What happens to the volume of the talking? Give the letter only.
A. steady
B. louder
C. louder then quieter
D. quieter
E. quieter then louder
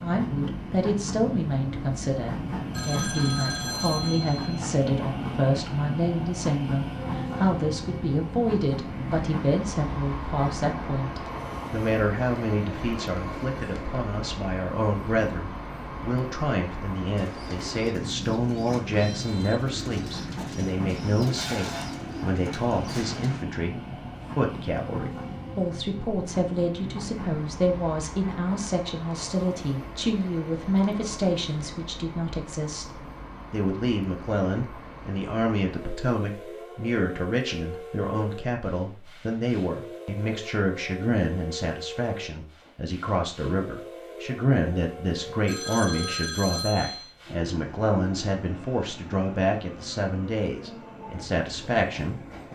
A.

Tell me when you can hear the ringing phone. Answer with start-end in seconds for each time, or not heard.
2.7-4.6, 45.5-47.1.